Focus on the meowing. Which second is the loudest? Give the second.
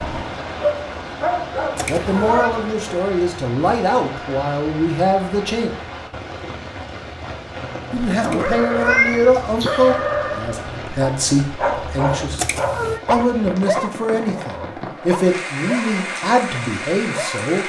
9 s.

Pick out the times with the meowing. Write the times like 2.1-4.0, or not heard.
1.8-2.5, 8.2-10.0, 12.3-13.0.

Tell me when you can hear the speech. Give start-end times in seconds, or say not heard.
1.9-5.7, 7.9-12.4, 13.1-17.6.